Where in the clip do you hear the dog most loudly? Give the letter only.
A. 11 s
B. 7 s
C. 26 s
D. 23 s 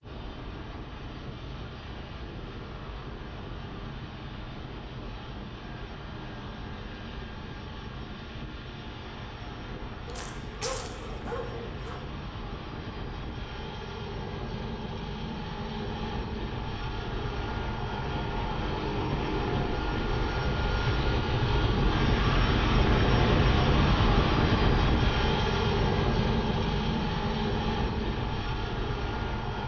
A.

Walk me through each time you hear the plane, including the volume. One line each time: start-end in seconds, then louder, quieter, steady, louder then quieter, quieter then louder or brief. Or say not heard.
0.0-29.6 louder.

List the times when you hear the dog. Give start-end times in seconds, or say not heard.
10.1-12.0.